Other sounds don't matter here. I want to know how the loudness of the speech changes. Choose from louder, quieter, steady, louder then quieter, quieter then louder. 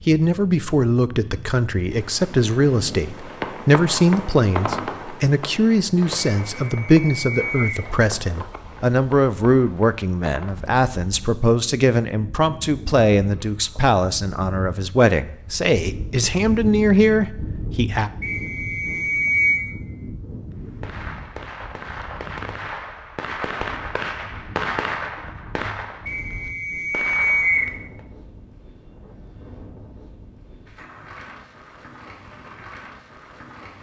steady.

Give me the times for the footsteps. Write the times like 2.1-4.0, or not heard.
not heard.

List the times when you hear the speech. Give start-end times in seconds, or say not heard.
0.1-18.1.